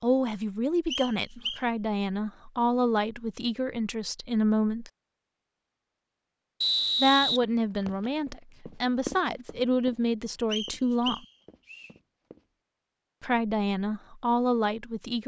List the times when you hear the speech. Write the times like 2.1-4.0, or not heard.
0.0-4.9, 7.0-11.2, 13.2-15.2.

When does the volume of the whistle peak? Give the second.
7 s.